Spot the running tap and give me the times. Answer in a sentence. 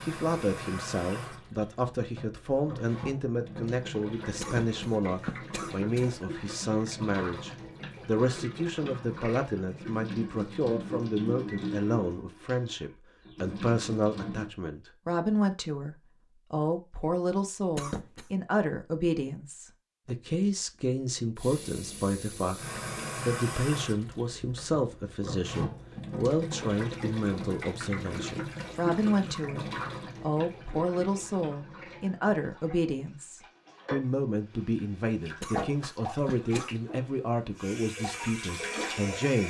The running tap can be heard from 0.0 to 14.5 s and from 21.4 to 39.4 s.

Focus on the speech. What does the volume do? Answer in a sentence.
The loudness of the speech stays about the same.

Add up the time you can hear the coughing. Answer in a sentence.
The coughing can be heard for 4 seconds in total.